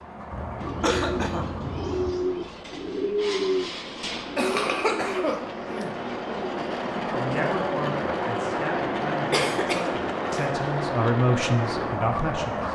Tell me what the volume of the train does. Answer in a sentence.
The loudness of the train goes up.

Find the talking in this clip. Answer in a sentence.
You can hear the talking from 7.1 to 12.6 s.